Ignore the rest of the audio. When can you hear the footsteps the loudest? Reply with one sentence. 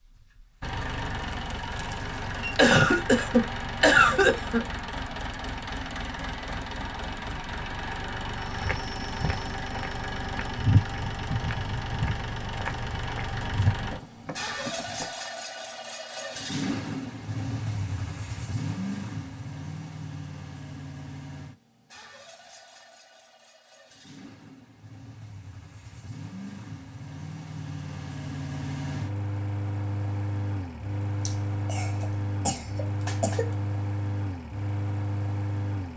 The volume of the footsteps peaks at 11 seconds.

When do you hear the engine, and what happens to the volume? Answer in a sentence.
The engine can be heard from 0.0 to 35.9 s, getting quieter then louder.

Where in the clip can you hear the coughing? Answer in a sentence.
You can hear the coughing from 2.5 to 4.7 s and from 31.2 to 33.5 s.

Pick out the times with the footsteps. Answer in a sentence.
You can hear the footsteps from 8.4 to 15.2 s.